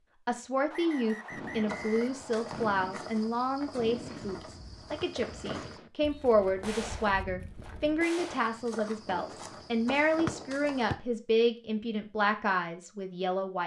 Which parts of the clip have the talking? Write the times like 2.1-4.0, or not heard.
0.2-13.6.